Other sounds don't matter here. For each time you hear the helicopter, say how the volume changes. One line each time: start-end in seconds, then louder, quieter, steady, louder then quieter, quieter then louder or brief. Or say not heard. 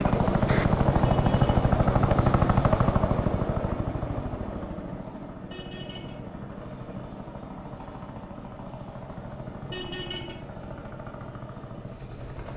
0.0-12.5 quieter.